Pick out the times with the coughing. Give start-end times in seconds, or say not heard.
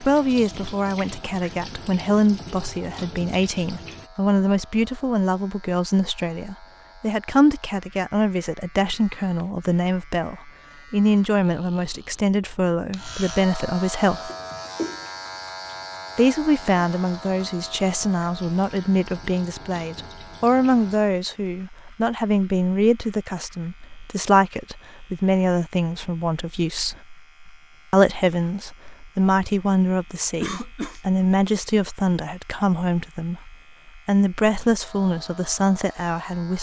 14.2-15.1, 30.4-31.0.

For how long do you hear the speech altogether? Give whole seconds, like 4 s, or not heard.
34 s.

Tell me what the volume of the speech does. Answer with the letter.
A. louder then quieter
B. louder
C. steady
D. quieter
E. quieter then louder
C.